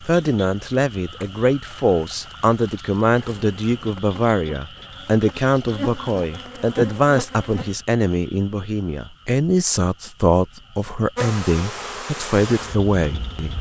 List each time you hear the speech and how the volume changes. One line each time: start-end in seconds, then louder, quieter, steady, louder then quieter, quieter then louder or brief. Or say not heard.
0.0-13.5 steady.